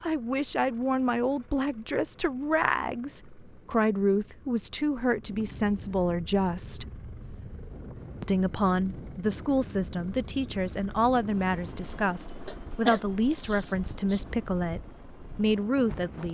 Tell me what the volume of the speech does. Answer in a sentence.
The loudness of the speech stays about the same.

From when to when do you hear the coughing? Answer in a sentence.
You can hear the coughing from 12.4 to 14.2 s.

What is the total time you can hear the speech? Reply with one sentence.
The speech can be heard for 15 seconds in total.